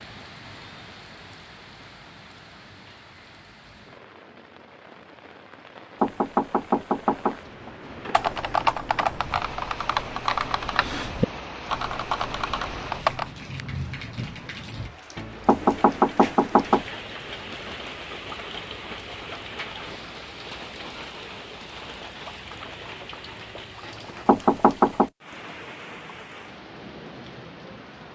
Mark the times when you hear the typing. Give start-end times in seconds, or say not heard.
8.1-13.3.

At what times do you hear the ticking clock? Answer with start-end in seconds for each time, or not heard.
not heard.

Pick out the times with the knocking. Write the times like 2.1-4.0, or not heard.
6.0-7.3, 15.4-16.9, 24.2-25.1.